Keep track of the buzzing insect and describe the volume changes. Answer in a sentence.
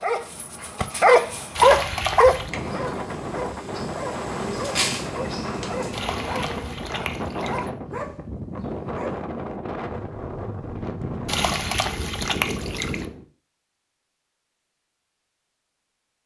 The loudness of the buzzing insect goes up, then down.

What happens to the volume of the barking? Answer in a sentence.
The volume of the barking goes down.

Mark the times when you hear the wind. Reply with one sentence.
You can hear the wind from 0.0 to 13.2 s.